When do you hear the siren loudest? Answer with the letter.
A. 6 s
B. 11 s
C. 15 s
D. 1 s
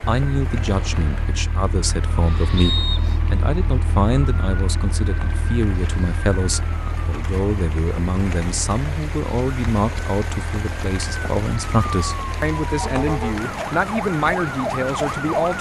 C.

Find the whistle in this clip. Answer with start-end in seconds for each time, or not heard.
2.5-3.1.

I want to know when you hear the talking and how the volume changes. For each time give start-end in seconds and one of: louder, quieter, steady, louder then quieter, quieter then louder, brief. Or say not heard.
0.1-15.5 steady.